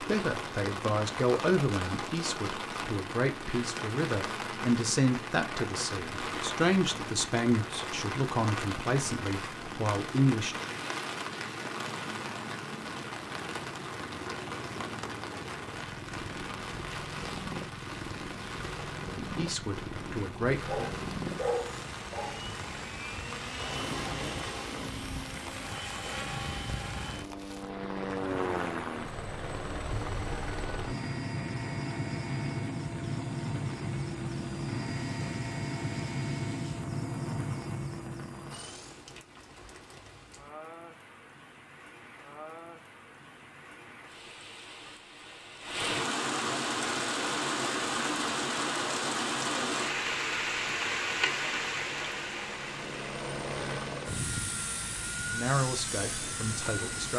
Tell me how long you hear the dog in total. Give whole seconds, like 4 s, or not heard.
2 s.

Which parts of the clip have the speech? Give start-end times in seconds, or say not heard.
0.0-10.7, 19.2-20.8, 55.3-57.1.